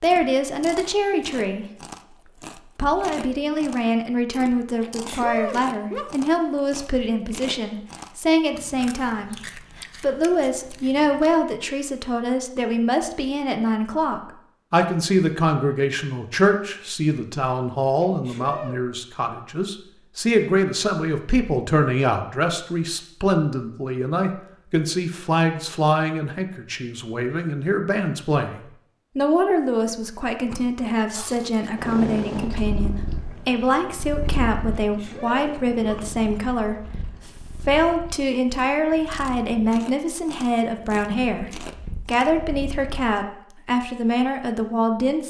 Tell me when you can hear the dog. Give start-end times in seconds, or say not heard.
not heard.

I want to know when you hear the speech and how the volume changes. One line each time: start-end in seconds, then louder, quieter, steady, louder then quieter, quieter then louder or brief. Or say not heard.
0.0-1.6 brief
2.8-45.2 steady.